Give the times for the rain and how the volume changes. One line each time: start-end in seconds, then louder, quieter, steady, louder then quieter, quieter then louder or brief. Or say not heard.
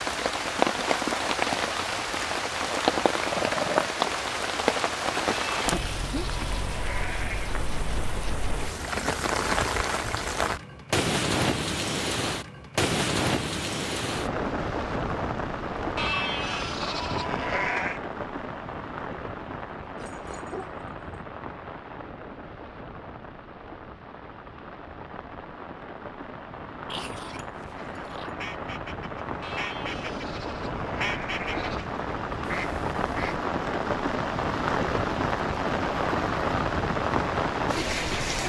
0.0-38.4 quieter then louder.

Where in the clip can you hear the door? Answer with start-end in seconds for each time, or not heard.
not heard.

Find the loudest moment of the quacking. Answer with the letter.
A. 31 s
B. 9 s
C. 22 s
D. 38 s
A.